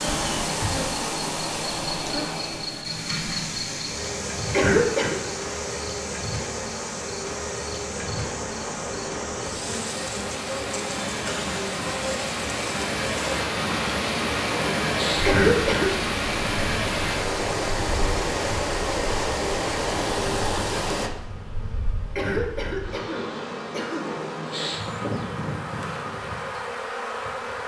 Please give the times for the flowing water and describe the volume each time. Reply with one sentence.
The flowing water can be heard from 0.0 to 21.1 s, getting quieter then louder.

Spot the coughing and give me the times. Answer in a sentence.
The coughing can be heard from 4.5 to 5.2 s, from 15.2 to 15.9 s and from 22.1 to 24.1 s.